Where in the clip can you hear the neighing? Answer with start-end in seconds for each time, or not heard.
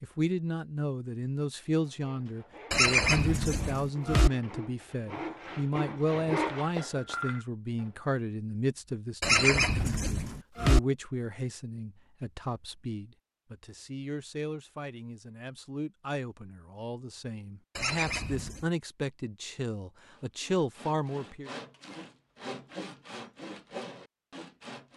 2.7-4.3, 9.2-10.8, 17.8-18.6.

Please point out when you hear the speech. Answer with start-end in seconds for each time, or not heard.
0.0-21.5.